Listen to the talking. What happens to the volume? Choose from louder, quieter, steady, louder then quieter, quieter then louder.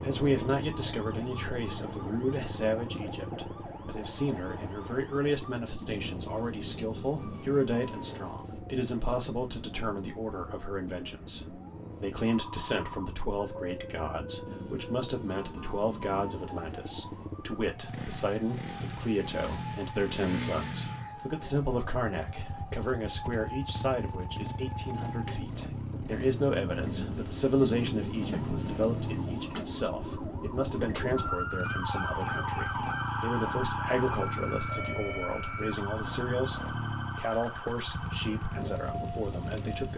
steady.